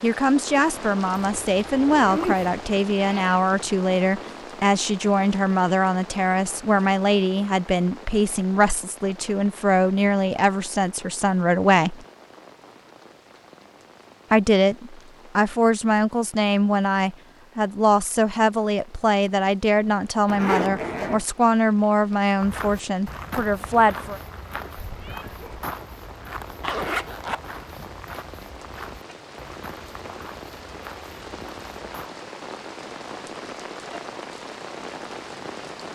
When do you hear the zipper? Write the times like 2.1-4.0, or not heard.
1.1-2.5, 20.2-21.2, 26.6-27.4.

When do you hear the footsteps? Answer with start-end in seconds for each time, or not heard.
22.4-32.1.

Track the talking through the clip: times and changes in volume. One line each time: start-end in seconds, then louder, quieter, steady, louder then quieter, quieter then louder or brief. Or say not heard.
0.0-12.1 steady
14.3-24.2 steady.